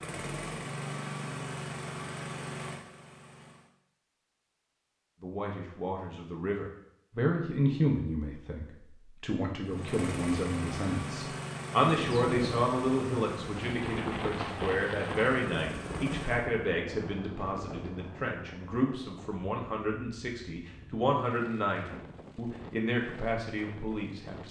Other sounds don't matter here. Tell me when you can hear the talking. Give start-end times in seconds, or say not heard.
5.2-24.4.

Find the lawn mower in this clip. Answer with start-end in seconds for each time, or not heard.
0.0-3.7, 9.6-16.4.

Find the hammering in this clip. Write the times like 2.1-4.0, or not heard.
not heard.